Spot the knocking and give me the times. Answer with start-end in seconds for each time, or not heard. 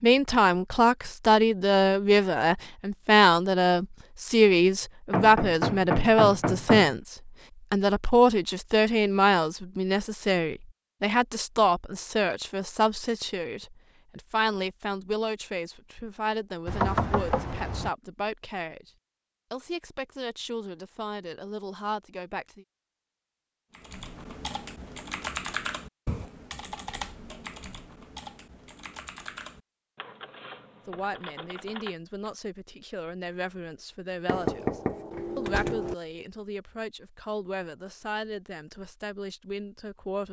5.1-7.0, 16.6-17.9, 34.2-36.0.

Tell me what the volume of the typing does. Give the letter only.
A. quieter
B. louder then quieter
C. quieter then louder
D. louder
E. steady
A.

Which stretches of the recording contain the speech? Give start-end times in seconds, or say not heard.
0.0-18.9, 19.5-22.6, 30.9-40.2.